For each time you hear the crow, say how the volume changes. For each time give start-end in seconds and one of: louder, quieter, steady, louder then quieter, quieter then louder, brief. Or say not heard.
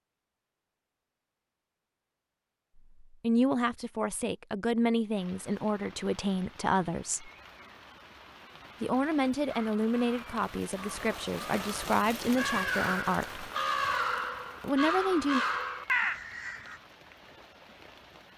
9.4-16.8 louder.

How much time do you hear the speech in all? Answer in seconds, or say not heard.
10 s.